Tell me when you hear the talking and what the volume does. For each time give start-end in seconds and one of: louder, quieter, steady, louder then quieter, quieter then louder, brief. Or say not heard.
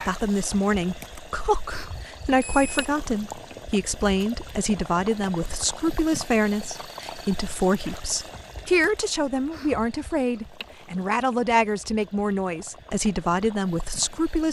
0.1-14.4 steady.